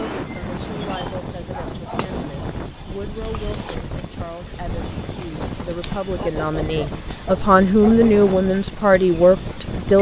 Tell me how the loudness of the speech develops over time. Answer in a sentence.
The loudness of the speech goes up.